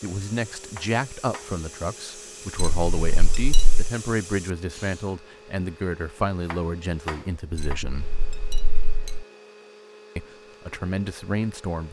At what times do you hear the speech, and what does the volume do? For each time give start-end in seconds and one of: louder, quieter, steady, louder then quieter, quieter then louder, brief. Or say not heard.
0.0-8.1 steady
10.2-11.8 brief.